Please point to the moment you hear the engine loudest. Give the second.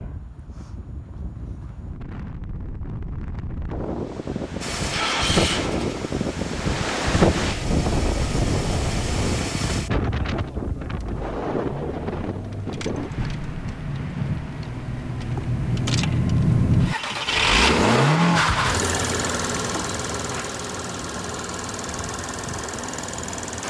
18 s.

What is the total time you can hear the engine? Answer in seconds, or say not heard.
19 s.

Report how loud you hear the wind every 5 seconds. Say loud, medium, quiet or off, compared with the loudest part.
medium, loud, medium, quiet, quiet.